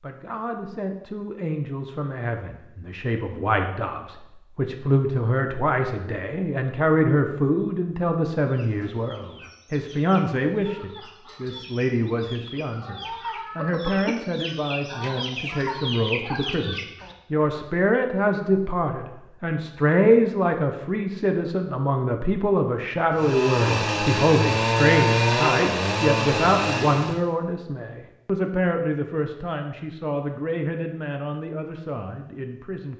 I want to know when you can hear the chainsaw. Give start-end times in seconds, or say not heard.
23.1-27.2.